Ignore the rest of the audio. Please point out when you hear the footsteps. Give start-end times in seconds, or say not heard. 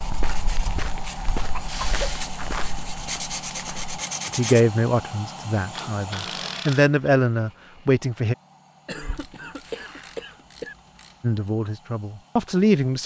0.0-4.0.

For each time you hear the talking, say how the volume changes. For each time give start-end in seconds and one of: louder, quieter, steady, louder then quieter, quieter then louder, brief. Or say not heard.
4.3-8.3 quieter then louder
11.2-13.0 brief.